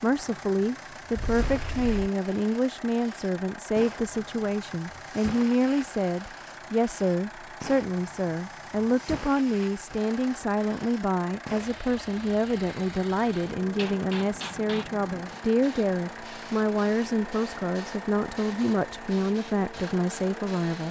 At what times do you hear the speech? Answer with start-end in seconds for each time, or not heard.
0.0-20.8.